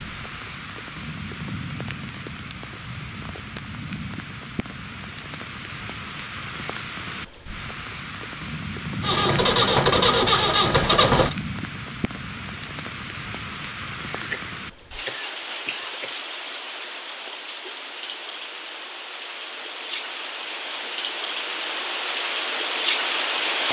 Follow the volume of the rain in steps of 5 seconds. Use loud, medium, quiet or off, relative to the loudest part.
medium, medium, medium, medium, loud.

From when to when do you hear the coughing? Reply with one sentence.
You can hear the coughing from 14.2 to 16.1 s.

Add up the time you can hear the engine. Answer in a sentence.
The engine can be heard for 2 seconds in total.